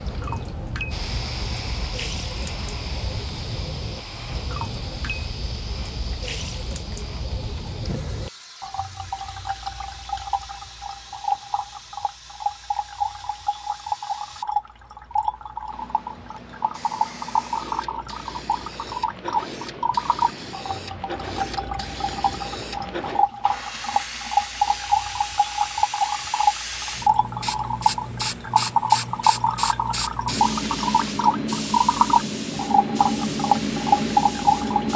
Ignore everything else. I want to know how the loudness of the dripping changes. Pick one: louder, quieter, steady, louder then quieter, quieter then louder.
louder.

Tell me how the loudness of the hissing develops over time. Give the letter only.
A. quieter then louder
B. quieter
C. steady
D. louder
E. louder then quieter
A.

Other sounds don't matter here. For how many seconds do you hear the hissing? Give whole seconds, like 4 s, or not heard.
35 s.